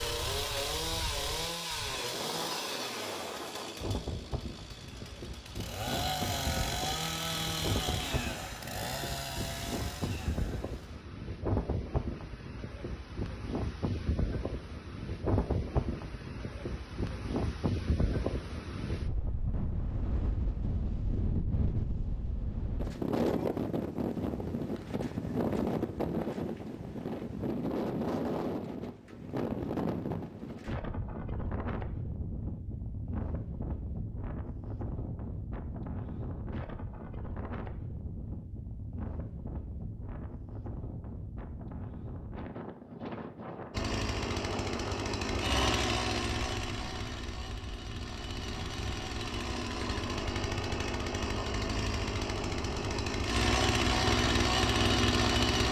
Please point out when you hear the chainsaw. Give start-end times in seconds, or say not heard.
0.0-11.1, 43.7-55.6.